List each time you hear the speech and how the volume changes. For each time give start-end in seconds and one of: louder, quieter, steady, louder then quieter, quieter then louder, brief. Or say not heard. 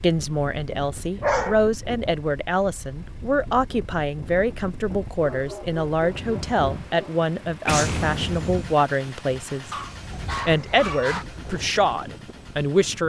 0.0-9.7 steady
10.4-13.0 brief.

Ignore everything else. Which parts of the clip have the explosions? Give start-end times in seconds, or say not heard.
7.7-8.8.